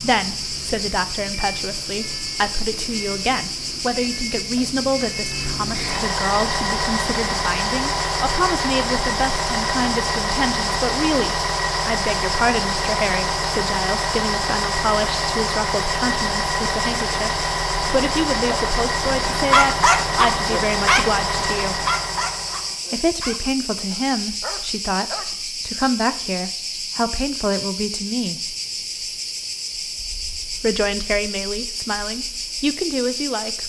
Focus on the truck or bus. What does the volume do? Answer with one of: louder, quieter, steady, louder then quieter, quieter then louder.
louder.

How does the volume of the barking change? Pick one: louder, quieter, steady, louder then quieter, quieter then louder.
quieter.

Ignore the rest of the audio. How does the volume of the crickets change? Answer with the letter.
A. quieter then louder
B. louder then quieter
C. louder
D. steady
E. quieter
D.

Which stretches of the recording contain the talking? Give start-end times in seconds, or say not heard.
0.0-21.9, 22.9-28.6, 30.6-33.6.